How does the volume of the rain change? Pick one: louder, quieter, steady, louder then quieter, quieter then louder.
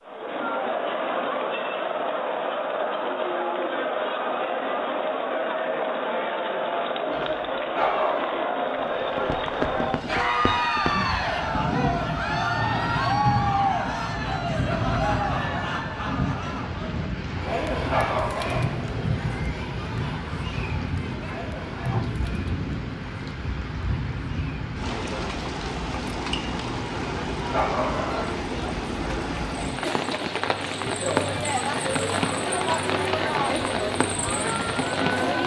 steady.